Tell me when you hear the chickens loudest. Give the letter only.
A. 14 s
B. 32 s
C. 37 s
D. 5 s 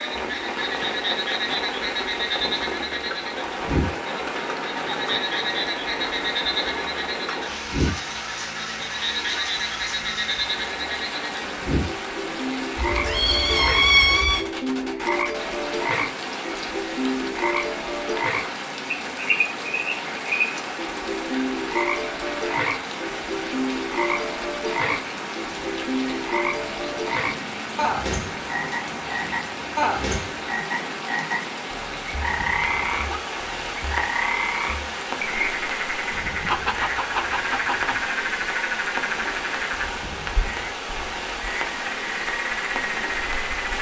C.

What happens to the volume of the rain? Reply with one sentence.
The loudness of the rain stays about the same.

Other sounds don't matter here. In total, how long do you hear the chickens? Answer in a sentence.
The chickens can be heard for 3 seconds in total.